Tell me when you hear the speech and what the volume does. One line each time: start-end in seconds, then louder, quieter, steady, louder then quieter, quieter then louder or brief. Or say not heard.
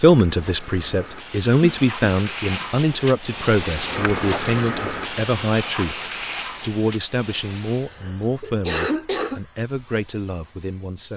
0.0-11.1 quieter.